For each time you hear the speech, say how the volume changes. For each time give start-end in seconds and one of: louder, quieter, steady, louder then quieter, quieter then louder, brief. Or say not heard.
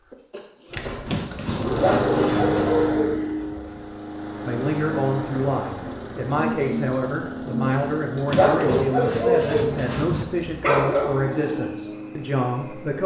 4.5-13.0 steady.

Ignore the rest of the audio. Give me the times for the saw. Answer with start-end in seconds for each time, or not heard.
1.1-2.8, 8.2-10.2.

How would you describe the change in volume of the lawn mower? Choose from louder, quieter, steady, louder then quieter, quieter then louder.
quieter.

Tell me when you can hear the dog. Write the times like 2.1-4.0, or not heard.
1.8-3.9, 8.3-11.2.